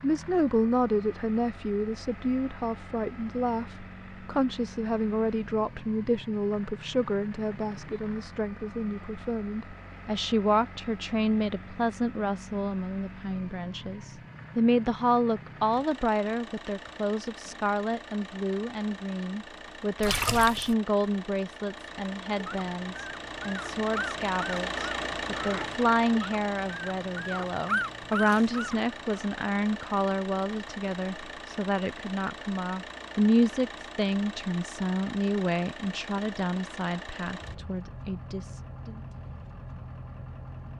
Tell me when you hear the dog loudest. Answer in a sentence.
The volume of the dog peaks at 28 seconds.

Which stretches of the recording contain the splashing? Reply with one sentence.
The splashing can be heard from 20.0 to 20.8 s.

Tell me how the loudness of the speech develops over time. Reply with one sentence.
The loudness of the speech stays about the same.